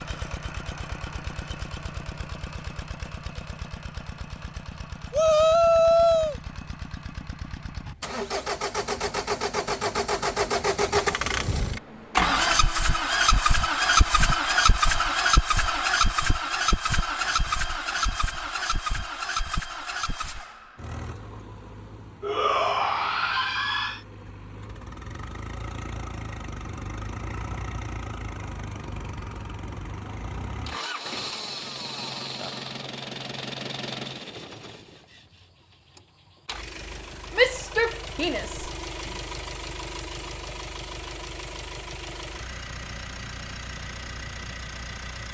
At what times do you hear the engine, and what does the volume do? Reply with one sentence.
The engine can be heard from 0.0 to 45.2 s, getting louder then quieter.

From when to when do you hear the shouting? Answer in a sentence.
You can hear the shouting from 5.1 to 6.3 s, from 22.2 to 24.0 s and from 37.4 to 38.6 s.